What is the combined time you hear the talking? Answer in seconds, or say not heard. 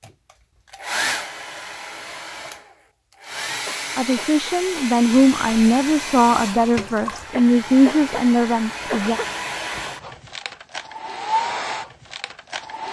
5 s.